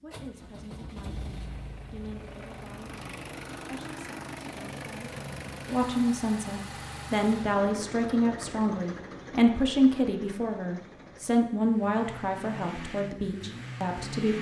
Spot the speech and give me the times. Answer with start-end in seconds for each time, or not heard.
0.0-14.3.